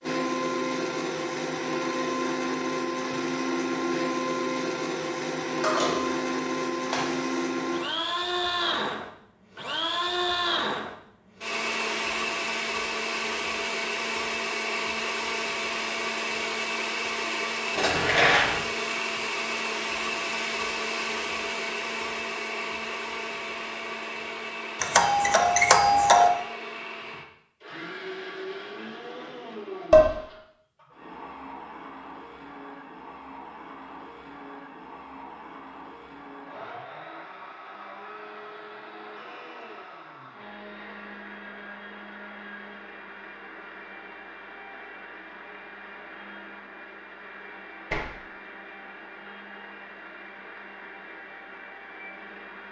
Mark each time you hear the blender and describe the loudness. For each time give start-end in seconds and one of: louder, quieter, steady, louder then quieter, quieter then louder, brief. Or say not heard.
0.0-52.6 quieter.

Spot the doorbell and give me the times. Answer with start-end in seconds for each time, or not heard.
24.8-26.3.